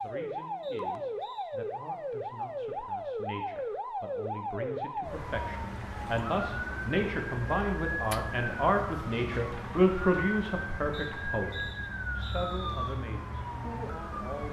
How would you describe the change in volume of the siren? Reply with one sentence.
The volume of the siren stays about the same.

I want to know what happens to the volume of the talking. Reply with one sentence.
The volume of the talking goes up, then down.